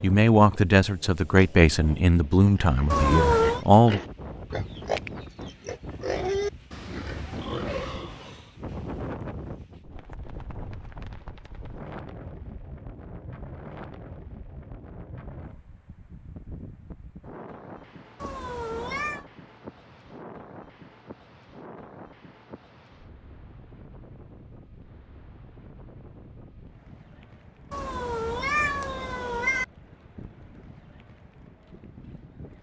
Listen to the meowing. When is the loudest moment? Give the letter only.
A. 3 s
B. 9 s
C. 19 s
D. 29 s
A.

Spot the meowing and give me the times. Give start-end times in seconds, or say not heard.
2.9-3.6, 18.2-19.2, 27.7-29.6.